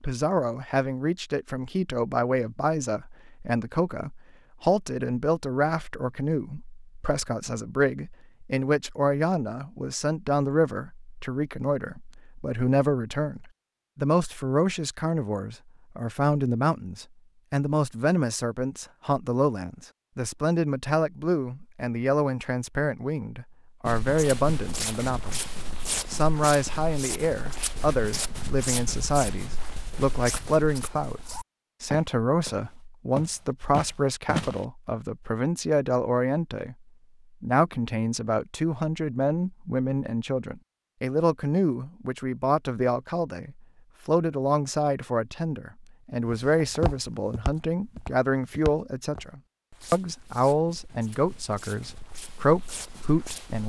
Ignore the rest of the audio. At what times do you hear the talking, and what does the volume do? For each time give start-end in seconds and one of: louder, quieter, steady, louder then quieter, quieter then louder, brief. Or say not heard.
0.0-25.5 steady
26.1-36.8 steady
37.4-53.6 steady.